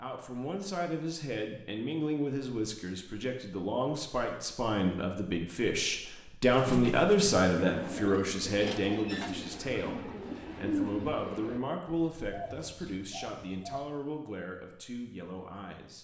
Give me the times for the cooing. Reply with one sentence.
The cooing can be heard from 6.5 to 13.8 s.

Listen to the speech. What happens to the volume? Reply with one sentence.
The volume of the speech goes up, then down.